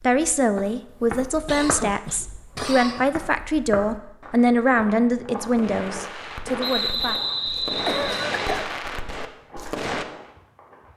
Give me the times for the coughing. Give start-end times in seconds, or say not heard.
1.4-3.1, 7.8-8.7.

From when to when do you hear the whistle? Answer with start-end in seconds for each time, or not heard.
6.6-8.6.